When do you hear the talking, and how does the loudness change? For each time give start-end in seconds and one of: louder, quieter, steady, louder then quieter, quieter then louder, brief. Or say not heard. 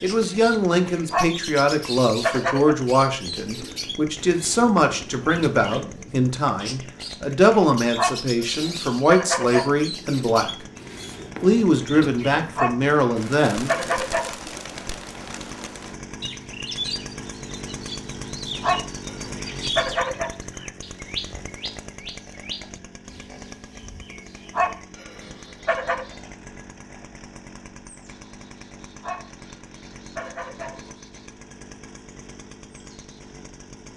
0.0-10.5 steady
11.4-13.9 brief.